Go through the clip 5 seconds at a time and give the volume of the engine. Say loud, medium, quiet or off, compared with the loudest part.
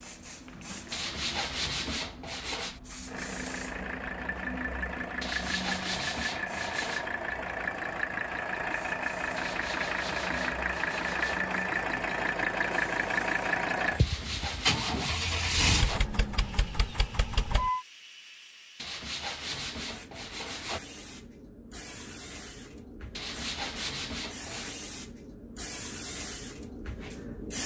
medium, loud, loud, loud, off, off.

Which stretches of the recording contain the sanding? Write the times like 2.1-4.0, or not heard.
0.9-2.8, 5.2-7.1, 9.3-11.3, 13.9-16.0, 18.8-20.8, 23.1-24.8.